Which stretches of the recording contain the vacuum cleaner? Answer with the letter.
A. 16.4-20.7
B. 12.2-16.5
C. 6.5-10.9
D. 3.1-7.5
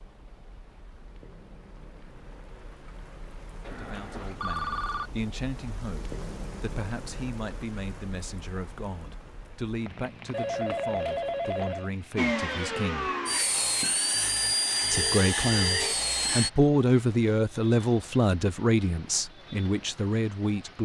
B.